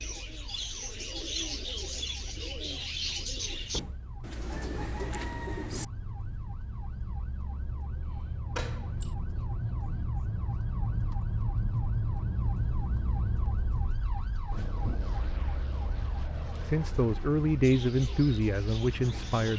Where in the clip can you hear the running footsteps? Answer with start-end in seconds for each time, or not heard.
not heard.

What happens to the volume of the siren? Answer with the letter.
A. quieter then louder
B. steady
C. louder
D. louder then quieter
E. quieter
D.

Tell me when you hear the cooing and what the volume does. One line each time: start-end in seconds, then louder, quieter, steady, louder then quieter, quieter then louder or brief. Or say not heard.
0.0-5.8 steady
17.6-19.5 brief.